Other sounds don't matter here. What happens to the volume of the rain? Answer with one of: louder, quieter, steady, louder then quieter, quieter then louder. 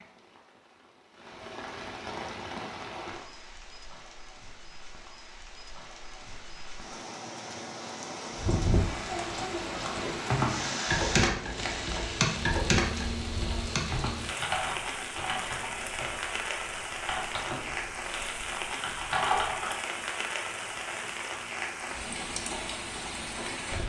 louder.